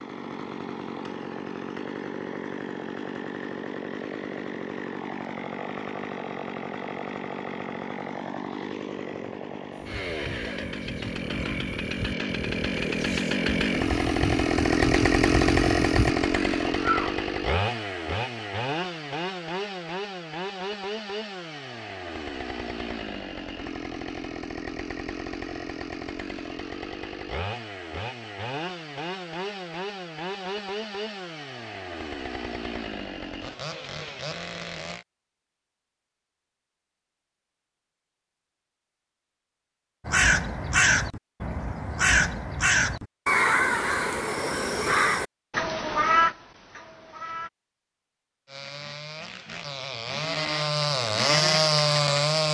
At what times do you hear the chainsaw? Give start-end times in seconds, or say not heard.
0.0-35.0, 48.5-52.4.